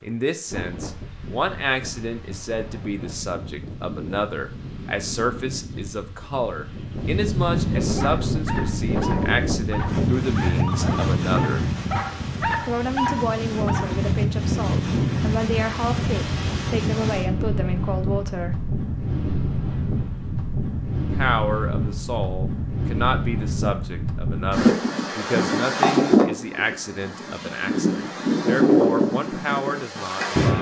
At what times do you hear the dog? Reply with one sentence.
The dog can be heard from 8.0 to 14.1 s.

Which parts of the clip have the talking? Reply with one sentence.
The talking can be heard from 0.0 to 11.7 s, from 12.6 to 18.6 s and from 21.1 to 30.5 s.